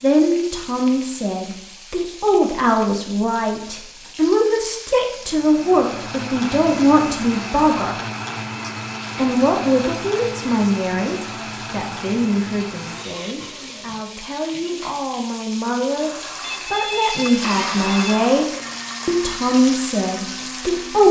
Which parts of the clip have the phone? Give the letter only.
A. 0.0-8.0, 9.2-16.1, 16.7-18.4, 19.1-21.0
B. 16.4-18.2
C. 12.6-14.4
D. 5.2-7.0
B.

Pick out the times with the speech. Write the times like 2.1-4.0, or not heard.
0.0-8.0, 9.2-16.1, 16.7-18.4, 19.1-21.0.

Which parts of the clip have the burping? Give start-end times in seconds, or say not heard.
not heard.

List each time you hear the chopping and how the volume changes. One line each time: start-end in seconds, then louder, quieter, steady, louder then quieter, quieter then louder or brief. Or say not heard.
not heard.